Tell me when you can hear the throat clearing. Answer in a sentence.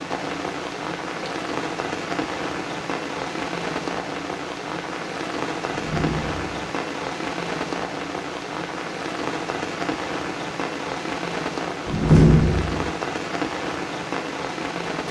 You can't hear the throat clearing here.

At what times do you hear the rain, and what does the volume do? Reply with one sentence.
The rain can be heard from 0.0 to 15.0 s, at a steady volume.